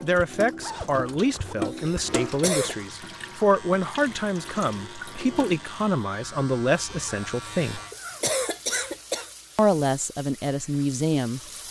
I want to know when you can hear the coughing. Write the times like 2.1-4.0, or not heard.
1.6-2.8, 7.7-9.3.